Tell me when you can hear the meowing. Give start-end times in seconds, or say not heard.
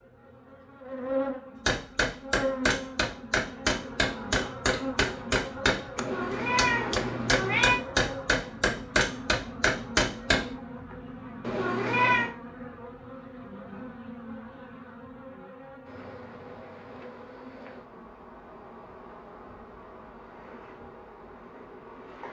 6.0-7.8, 11.4-12.3.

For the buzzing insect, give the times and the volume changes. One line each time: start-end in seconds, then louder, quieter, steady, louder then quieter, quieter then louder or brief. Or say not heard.
0.0-22.2 quieter.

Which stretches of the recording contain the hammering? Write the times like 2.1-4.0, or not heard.
1.6-10.5.